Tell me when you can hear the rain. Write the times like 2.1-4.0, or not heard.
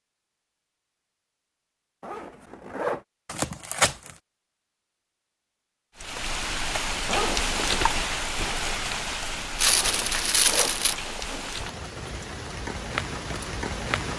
6.0-14.1.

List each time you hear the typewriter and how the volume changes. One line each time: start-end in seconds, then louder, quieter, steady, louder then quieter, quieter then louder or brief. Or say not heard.
not heard.